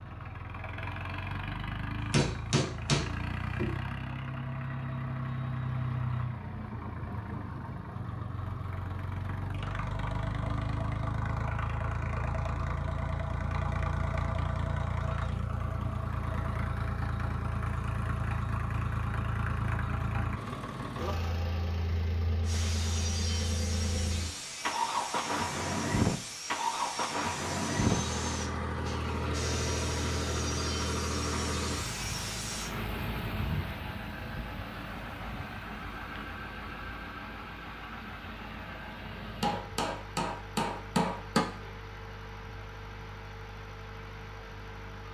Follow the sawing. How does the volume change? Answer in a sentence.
The loudness of the sawing stays about the same.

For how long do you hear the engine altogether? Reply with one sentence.
You can hear the engine for 45 seconds altogether.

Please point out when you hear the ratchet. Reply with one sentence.
The ratchet can't be heard in this clip.